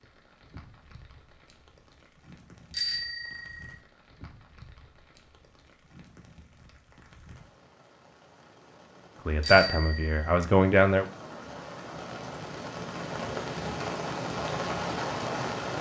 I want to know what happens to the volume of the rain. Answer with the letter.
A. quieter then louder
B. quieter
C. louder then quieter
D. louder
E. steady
D.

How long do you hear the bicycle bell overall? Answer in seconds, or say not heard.
2 s.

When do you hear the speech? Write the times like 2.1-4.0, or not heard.
9.2-11.1.